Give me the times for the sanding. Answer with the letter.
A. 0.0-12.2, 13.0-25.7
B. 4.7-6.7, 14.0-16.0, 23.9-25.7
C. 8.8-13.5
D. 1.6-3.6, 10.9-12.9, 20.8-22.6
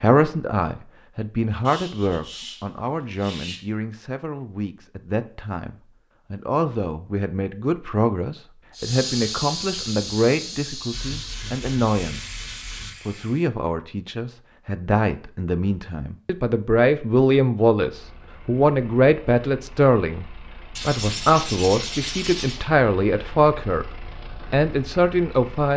D.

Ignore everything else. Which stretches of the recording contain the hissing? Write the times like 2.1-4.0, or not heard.
8.8-13.5.